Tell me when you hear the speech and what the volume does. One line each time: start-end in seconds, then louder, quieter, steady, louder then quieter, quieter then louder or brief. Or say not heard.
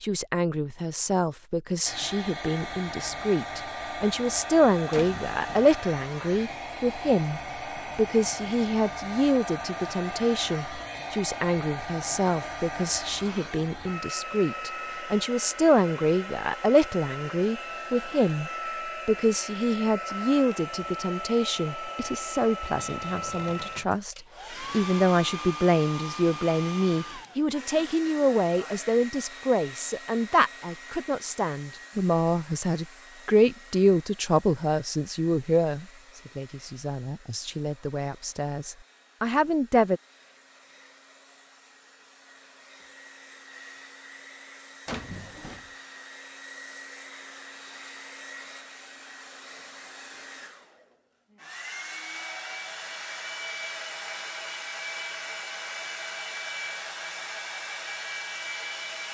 0.0-40.0 steady.